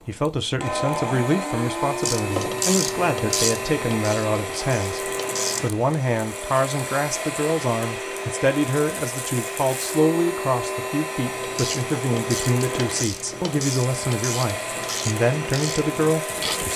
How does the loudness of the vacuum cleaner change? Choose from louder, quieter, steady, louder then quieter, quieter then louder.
steady.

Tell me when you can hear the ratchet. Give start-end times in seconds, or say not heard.
2.0-5.7, 11.3-16.7.